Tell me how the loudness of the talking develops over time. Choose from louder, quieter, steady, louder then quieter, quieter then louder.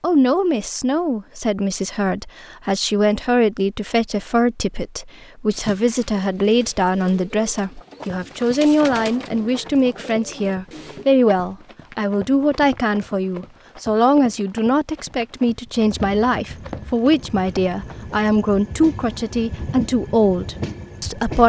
steady.